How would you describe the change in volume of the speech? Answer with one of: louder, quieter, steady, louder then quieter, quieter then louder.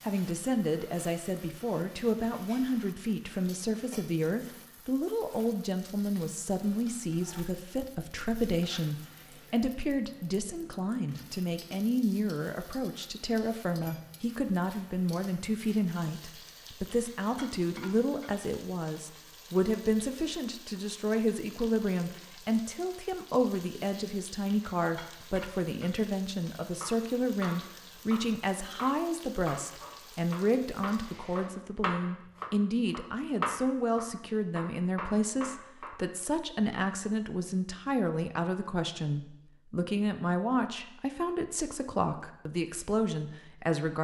steady.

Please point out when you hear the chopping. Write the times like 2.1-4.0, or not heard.
26.8-36.2.